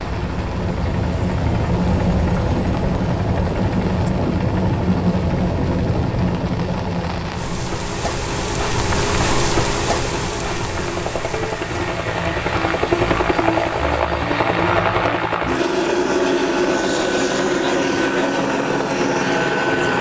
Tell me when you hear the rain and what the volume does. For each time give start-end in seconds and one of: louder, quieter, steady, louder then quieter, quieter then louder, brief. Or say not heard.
0.0-14.1 louder then quieter.